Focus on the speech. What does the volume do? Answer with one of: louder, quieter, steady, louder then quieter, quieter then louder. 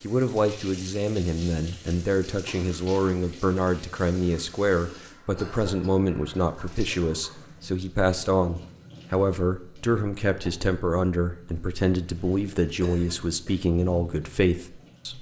steady.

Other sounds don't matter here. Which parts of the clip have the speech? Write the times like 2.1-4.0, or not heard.
0.0-15.1.